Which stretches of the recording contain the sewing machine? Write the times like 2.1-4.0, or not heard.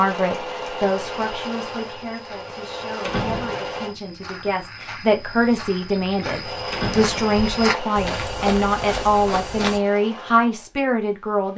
0.0-4.0, 6.4-11.5.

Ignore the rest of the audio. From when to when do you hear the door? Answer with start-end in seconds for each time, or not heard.
3.0-3.8, 6.7-7.3.